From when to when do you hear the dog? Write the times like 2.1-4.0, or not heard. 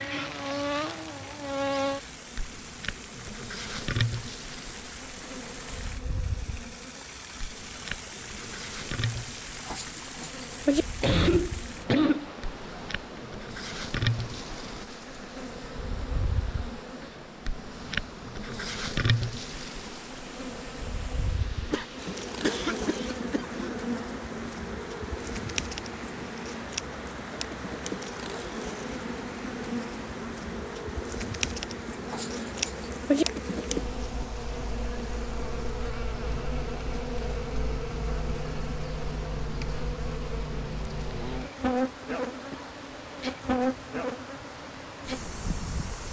9.7-10.8, 32.0-33.2.